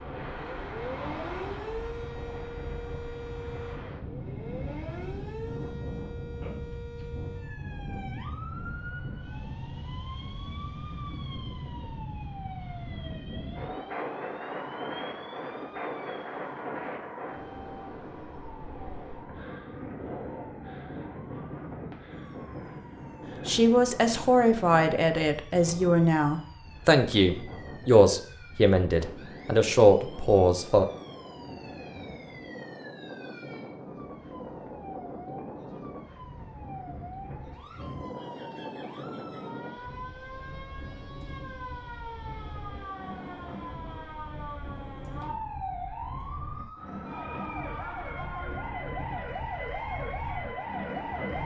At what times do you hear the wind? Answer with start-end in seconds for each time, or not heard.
0.0-51.4.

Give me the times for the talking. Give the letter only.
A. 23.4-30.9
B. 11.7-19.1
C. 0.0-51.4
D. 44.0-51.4
A.